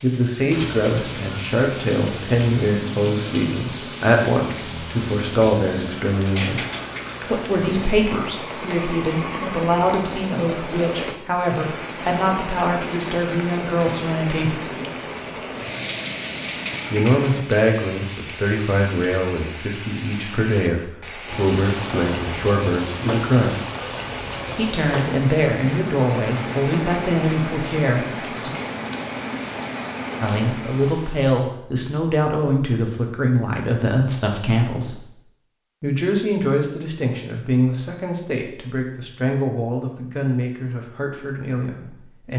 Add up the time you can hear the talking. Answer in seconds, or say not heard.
36 s.